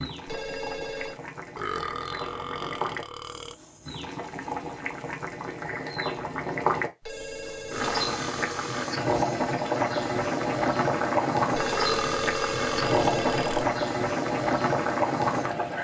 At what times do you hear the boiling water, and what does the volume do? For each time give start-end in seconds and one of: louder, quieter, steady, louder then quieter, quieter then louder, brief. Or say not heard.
0.0-15.7 louder.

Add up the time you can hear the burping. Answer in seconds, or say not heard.
5 s.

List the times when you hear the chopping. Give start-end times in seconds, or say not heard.
not heard.